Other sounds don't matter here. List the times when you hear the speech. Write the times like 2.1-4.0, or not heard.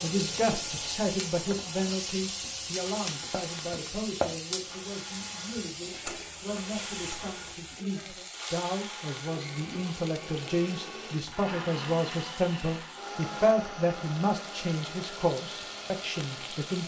0.0-16.8.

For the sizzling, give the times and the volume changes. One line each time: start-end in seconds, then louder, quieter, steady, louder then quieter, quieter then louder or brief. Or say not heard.
0.0-16.8 quieter.